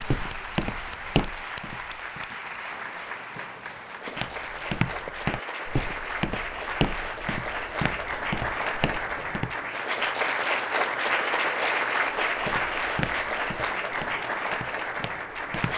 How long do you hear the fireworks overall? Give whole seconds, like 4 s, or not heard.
3 s.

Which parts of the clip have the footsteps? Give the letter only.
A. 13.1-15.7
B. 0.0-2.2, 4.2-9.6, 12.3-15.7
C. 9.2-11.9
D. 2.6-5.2
B.